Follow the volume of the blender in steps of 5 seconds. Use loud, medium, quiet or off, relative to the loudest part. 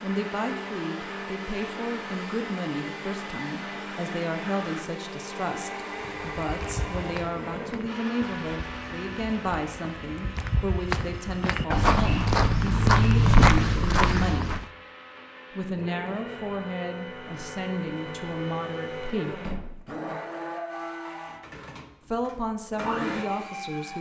loud, loud, medium, loud, loud.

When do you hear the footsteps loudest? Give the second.
13 s.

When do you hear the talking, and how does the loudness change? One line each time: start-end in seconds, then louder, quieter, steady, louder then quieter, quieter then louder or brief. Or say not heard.
0.0-14.6 steady
15.6-19.6 steady
22.1-23.9 brief.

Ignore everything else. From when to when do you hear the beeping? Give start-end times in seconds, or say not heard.
not heard.